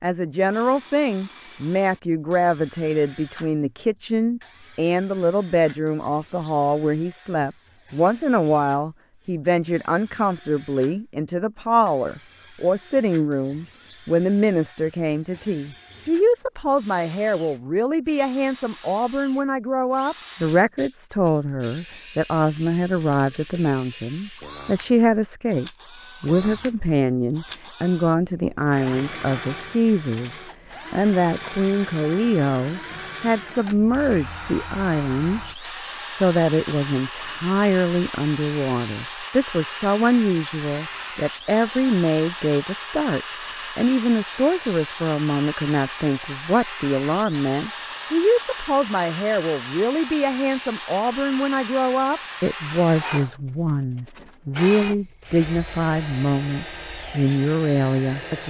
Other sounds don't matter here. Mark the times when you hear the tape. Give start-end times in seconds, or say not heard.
not heard.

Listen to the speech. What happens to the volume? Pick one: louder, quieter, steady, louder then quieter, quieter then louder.
steady.